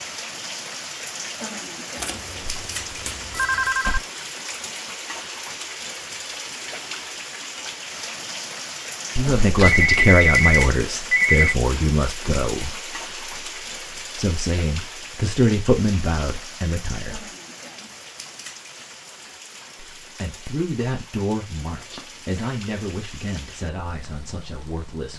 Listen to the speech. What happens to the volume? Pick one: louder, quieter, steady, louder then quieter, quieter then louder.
quieter.